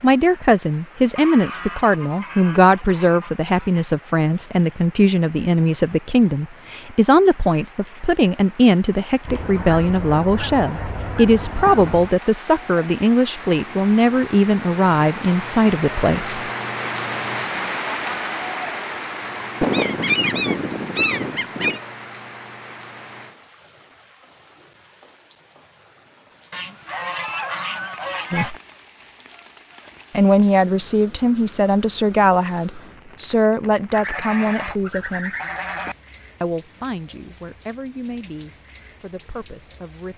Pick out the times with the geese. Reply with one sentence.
You can hear the geese from 1.1 to 3.9 s, from 9.2 to 12.2 s, from 19.6 to 21.8 s, from 26.5 to 28.6 s and from 33.9 to 36.0 s.